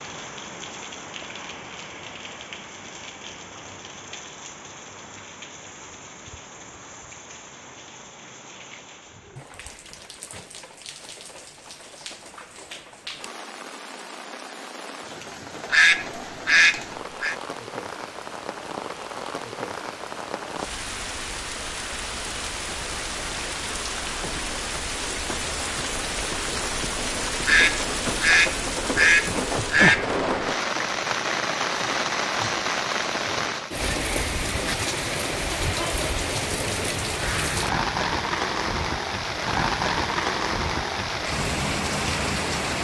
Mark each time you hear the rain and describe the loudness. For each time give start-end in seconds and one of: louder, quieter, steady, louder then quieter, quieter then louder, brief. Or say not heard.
0.0-42.7 louder.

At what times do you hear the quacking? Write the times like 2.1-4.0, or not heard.
15.7-17.4, 27.4-30.1.